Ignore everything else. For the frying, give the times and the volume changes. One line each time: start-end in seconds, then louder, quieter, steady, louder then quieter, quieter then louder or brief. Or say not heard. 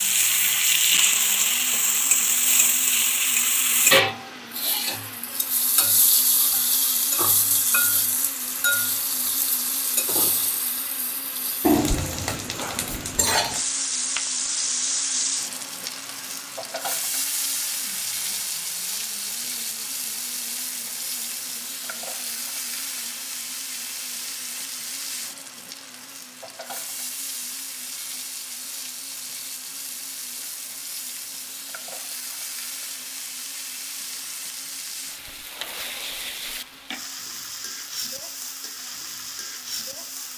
0.0-40.3 quieter.